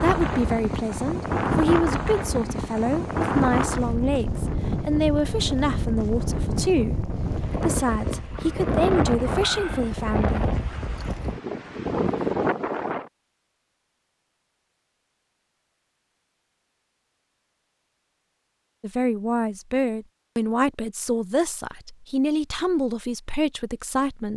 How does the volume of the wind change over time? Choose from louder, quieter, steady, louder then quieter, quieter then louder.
steady.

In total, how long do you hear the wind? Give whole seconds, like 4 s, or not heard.
13 s.